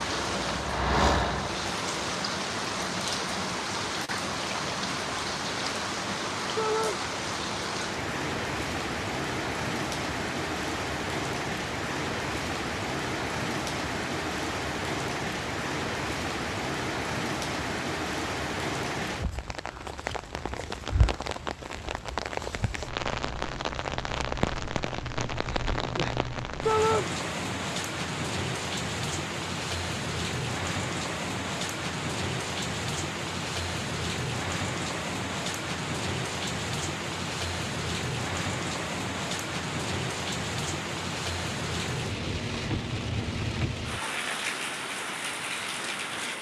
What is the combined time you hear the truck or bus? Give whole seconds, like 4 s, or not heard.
2 s.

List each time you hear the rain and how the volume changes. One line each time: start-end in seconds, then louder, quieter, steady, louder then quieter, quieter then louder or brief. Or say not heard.
0.0-46.3 steady.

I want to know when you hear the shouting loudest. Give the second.
27 s.